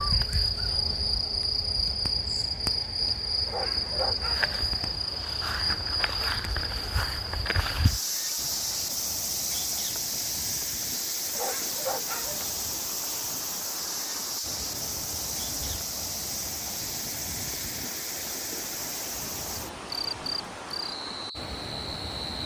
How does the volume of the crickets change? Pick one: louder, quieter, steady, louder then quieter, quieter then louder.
quieter.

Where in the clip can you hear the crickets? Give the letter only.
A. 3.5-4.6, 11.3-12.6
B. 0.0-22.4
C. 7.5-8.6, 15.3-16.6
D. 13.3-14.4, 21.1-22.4
B.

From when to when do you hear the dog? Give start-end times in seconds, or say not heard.
3.5-4.6, 11.3-12.6.